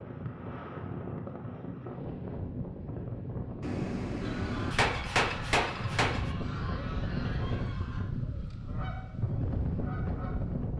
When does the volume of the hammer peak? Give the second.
5 s.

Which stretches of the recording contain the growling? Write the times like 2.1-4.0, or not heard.
not heard.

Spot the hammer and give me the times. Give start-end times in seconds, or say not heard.
3.6-6.3.